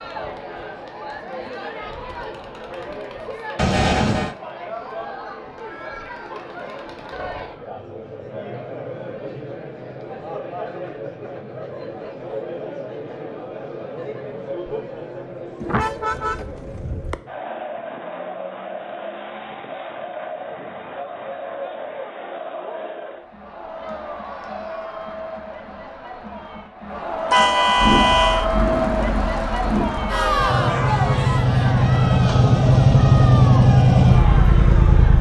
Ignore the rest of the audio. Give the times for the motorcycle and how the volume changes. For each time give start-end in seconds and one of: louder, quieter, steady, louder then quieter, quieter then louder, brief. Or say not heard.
27.8-35.1 louder.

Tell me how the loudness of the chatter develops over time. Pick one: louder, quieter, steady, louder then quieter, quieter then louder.
louder.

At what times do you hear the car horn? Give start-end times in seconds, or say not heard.
3.5-4.3, 15.6-17.1, 27.3-28.4.